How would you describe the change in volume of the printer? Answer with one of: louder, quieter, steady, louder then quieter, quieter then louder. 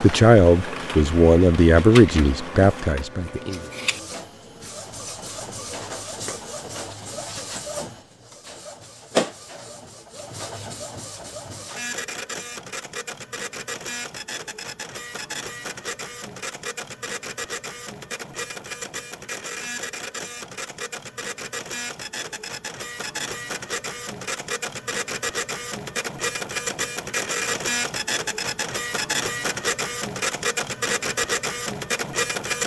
louder.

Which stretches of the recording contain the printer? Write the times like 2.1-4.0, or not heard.
0.0-32.6.